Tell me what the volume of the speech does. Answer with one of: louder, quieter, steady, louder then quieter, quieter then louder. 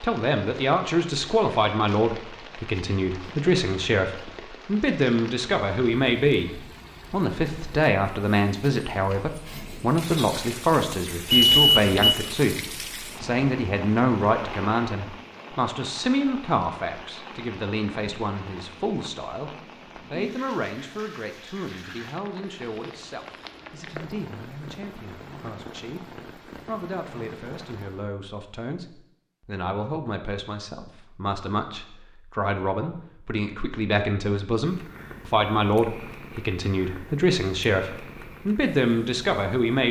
quieter then louder.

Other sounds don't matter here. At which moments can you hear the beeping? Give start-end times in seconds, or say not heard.
11.3-12.2.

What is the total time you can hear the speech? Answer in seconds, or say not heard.
39 s.